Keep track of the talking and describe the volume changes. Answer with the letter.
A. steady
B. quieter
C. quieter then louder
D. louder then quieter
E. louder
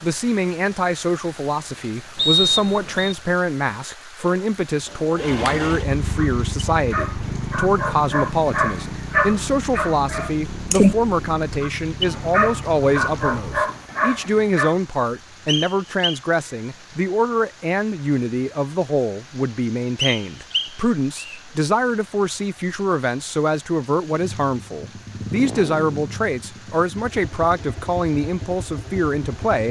A.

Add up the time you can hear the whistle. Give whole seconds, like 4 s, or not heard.
3 s.